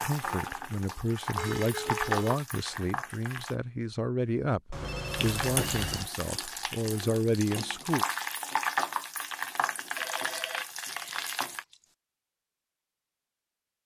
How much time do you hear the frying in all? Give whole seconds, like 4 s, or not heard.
10 s.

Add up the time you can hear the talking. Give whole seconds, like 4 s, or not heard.
8 s.